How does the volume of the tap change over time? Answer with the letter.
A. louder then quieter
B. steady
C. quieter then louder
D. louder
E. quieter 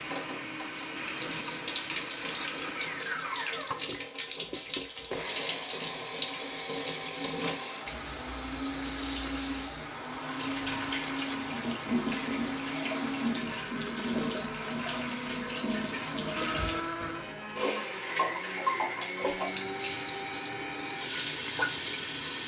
B.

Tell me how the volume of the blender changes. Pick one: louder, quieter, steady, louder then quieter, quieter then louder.
steady.